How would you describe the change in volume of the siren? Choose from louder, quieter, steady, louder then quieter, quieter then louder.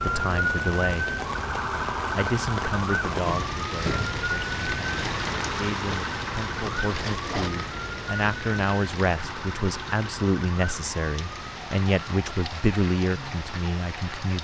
quieter.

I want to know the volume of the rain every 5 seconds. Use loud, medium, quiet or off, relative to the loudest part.
loud, loud, medium.